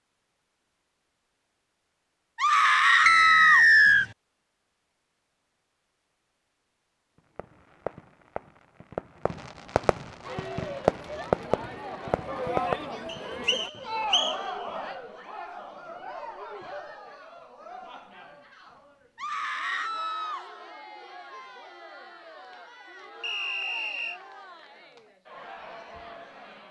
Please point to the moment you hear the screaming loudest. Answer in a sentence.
The volume of the screaming peaks at 3 seconds.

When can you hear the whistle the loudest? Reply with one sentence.
The loudest moment of the whistle is at 4 seconds.